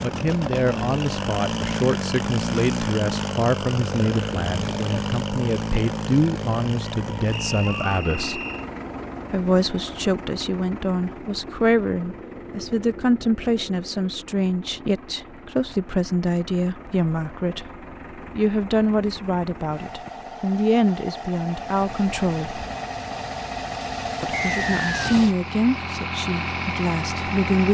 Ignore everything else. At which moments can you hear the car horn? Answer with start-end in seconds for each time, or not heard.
not heard.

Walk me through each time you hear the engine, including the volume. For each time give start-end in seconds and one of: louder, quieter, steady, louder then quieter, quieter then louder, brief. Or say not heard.
0.0-27.6 quieter then louder.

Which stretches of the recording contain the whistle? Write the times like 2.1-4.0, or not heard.
7.3-8.7, 24.3-24.9.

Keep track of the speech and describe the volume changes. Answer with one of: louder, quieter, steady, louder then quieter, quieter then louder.
steady.